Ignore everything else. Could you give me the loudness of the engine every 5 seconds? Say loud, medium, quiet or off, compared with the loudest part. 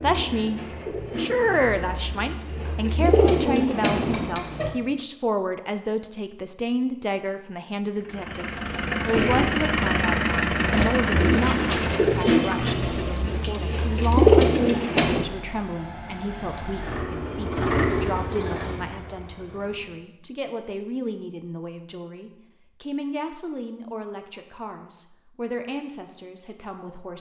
off, loud, loud, medium, off, off.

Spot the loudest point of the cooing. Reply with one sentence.
The loudest moment of the cooing is at 14 seconds.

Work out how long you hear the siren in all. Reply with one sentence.
The siren can't be heard in this clip.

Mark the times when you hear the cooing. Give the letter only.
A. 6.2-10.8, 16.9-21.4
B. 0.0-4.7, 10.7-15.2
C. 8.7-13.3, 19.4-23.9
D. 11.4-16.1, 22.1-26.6
B.